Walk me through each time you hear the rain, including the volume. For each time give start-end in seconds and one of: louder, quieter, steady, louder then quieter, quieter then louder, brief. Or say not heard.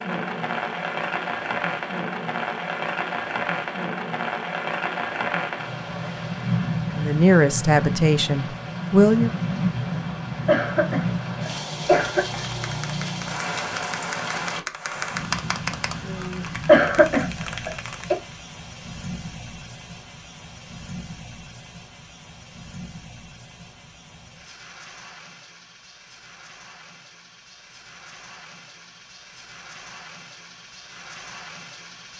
0.0-32.1 quieter.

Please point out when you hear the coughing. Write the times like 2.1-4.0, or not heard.
10.4-12.4, 16.6-18.1.